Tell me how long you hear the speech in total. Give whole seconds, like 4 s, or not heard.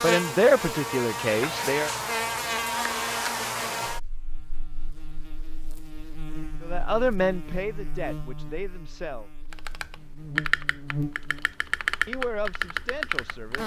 6 s.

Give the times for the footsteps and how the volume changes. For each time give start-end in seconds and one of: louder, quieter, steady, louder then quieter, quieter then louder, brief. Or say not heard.
not heard.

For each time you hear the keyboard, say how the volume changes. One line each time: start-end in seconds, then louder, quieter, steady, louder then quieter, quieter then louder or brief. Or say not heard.
9.5-13.6 quieter then louder.